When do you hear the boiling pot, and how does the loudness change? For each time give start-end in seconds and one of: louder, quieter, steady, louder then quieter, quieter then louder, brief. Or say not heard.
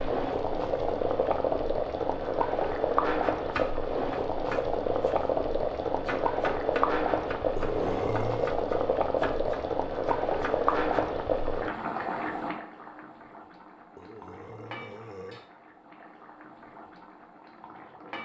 0.0-18.2 quieter.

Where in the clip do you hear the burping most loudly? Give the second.
8 s.